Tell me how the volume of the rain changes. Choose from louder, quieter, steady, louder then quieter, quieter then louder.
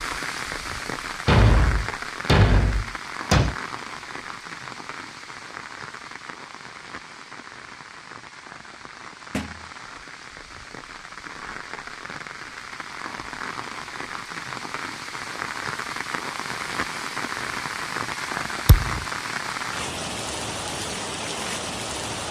quieter then louder.